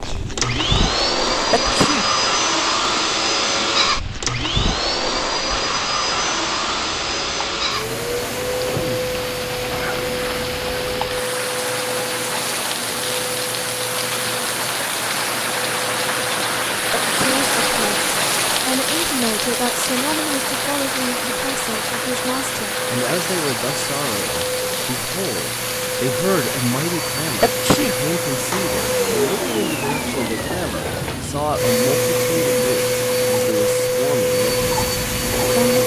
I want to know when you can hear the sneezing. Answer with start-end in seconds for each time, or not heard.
1.5-2.1, 16.9-17.4, 27.4-28.0.